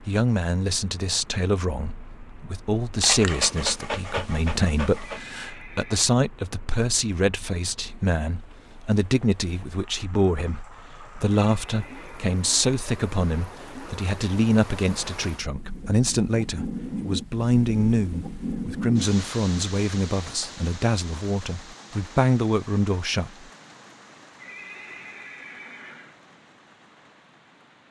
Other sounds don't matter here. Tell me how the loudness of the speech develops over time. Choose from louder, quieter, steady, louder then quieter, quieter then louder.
steady.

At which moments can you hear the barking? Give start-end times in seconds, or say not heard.
3.0-5.2.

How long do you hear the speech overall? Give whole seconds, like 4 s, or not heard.
23 s.